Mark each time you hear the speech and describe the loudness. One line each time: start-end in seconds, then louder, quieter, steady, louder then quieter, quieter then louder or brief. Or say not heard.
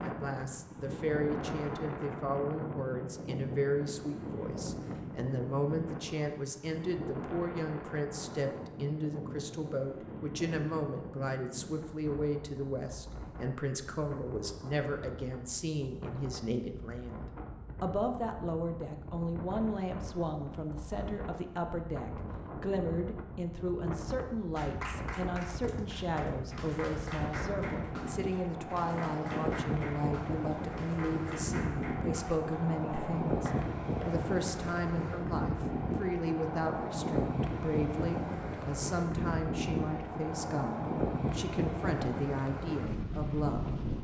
0.0-43.6 steady.